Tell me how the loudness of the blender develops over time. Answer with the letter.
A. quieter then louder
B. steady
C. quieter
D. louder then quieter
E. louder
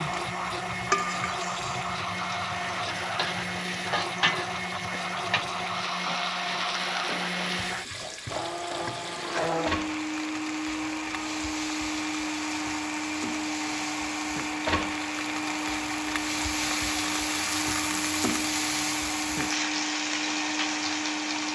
B.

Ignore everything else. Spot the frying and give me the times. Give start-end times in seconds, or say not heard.
0.0-21.4.